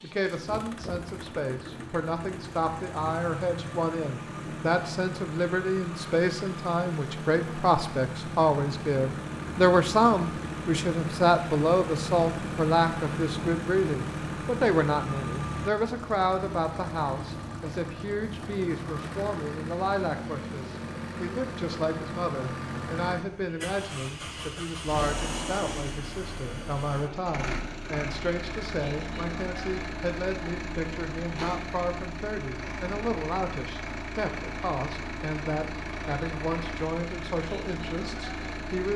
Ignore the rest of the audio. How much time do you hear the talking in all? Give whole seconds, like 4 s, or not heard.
39 s.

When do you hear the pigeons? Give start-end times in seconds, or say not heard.
not heard.